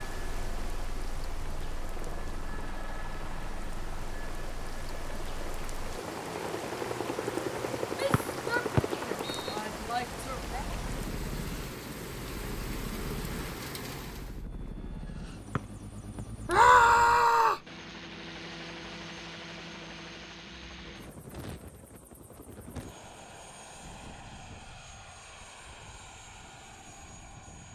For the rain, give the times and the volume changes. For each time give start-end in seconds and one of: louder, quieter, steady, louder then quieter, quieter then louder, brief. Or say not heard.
0.0-14.4 louder.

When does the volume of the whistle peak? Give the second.
9 s.